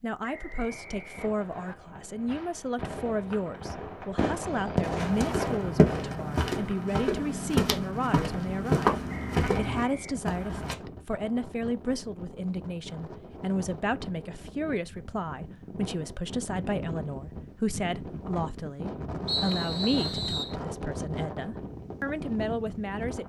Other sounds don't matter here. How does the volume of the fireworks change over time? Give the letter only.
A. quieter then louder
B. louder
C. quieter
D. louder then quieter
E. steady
B.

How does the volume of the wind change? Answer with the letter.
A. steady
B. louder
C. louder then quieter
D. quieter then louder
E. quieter
B.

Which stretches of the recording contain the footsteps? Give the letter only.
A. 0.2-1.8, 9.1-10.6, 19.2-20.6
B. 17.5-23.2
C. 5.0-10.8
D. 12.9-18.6
C.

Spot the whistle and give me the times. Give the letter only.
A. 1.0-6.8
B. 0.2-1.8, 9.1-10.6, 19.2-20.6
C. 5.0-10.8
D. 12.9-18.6
B.